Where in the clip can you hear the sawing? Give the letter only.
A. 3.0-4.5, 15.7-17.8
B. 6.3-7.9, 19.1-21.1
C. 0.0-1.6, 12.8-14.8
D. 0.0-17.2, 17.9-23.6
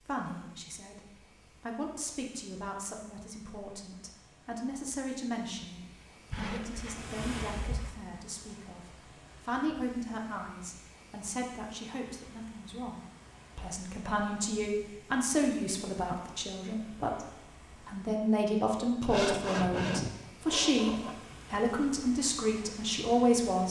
B.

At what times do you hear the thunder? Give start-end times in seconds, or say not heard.
not heard.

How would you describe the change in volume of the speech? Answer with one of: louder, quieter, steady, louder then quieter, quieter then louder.
louder.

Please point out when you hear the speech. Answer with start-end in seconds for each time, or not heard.
0.0-17.2, 17.9-23.6.